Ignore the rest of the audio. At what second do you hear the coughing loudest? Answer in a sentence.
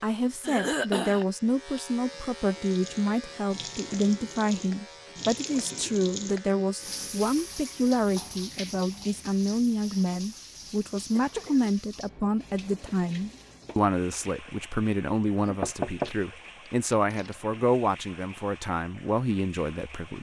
The loudest moment of the coughing is at 1 second.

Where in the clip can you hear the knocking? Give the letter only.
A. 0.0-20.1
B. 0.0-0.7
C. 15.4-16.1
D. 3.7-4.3
C.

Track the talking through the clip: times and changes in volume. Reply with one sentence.
You can hear the talking from 0.0 to 20.1 s, at a steady volume.